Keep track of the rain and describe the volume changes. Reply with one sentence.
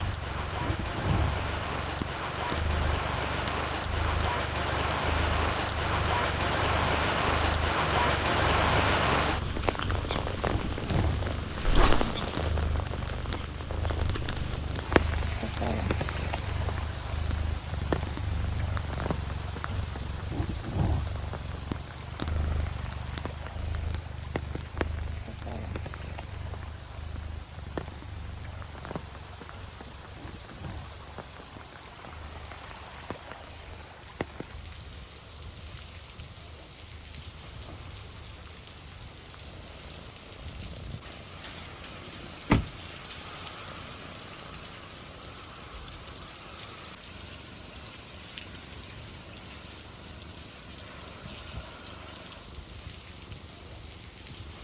The volume of the rain goes down.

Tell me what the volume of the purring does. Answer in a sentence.
The volume of the purring goes down.